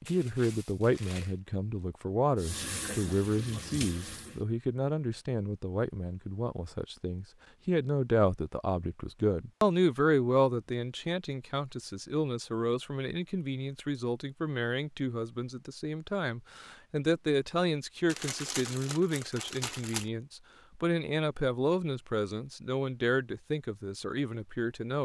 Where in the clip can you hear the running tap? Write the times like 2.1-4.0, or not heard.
2.4-4.5.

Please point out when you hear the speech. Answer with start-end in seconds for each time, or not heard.
0.0-24.9.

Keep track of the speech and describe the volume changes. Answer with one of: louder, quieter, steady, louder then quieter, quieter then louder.
steady.